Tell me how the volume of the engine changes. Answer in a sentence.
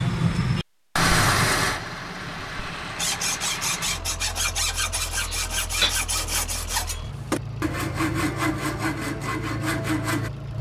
The volume of the engine goes down, then up.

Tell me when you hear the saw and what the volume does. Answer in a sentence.
The saw can be heard from 3.0 to 10.3 s, at a steady volume.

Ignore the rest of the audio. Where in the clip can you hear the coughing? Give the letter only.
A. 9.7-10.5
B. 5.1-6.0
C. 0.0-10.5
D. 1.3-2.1
B.